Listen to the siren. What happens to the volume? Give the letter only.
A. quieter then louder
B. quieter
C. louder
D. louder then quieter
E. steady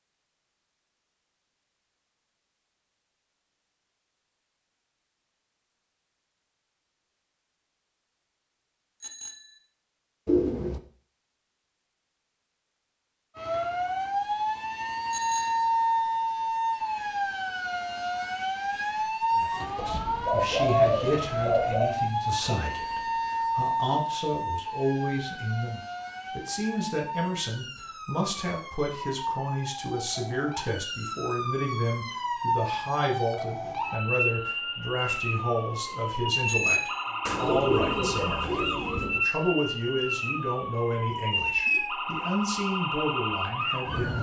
A.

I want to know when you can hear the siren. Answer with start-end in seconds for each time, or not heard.
13.3-44.1.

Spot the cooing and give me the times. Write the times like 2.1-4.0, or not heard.
10.2-10.8, 19.8-21.9, 37.2-39.2.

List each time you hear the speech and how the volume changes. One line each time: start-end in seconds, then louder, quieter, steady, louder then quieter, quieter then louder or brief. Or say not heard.
19.3-44.1 steady.